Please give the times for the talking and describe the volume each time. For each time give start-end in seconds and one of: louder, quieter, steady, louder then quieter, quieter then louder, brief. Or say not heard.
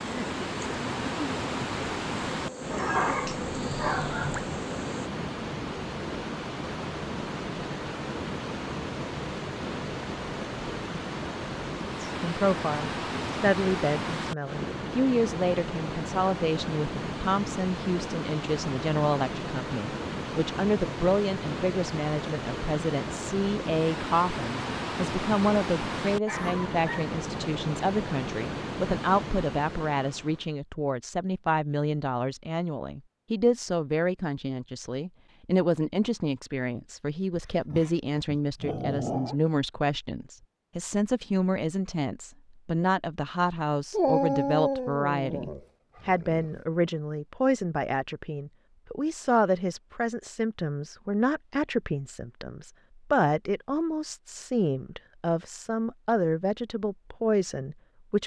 12.0-58.2 steady.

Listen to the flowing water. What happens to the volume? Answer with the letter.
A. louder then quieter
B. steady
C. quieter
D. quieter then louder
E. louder
B.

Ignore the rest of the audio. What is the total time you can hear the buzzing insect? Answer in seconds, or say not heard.
5 s.